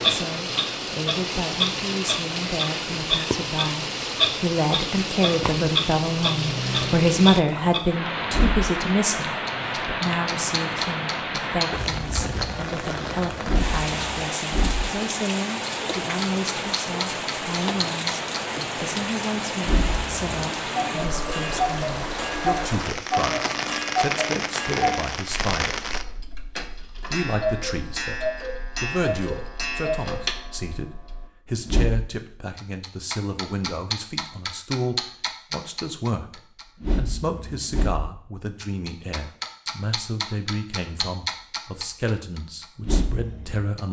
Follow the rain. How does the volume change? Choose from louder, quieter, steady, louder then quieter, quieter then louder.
steady.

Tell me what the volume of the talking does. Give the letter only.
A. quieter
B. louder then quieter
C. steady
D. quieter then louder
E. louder
A.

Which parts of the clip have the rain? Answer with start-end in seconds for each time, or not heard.
0.0-26.1.